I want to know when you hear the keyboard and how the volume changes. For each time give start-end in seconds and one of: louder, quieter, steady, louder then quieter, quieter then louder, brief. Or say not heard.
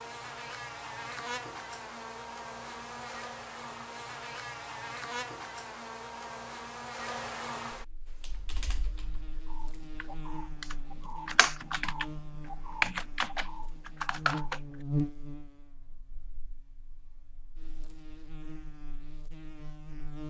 8.2-14.6 louder then quieter.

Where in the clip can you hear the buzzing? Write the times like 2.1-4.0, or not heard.
0.0-20.2.